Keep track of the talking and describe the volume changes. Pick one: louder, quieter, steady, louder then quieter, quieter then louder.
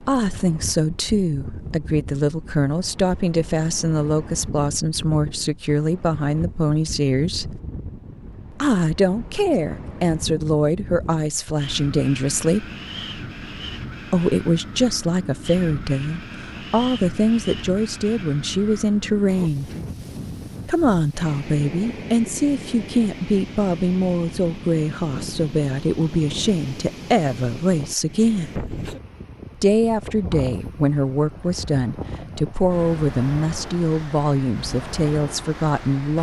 steady.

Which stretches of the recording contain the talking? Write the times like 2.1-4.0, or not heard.
0.0-7.6, 8.6-12.7, 14.1-19.7, 20.6-28.5, 29.6-36.1.